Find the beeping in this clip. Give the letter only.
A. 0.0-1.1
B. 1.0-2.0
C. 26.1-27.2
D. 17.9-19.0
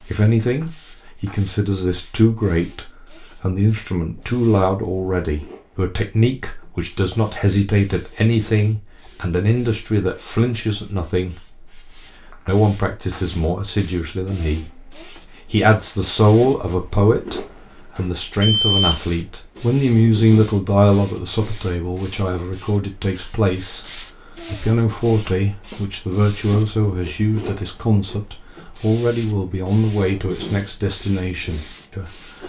D.